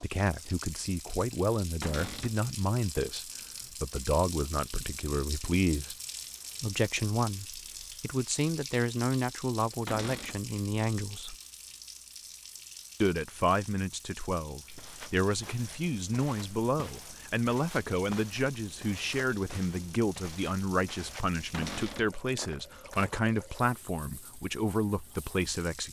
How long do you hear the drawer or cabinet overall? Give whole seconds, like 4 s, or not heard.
2 s.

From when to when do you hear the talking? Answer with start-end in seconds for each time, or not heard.
0.0-6.0, 6.6-11.3, 13.0-25.8.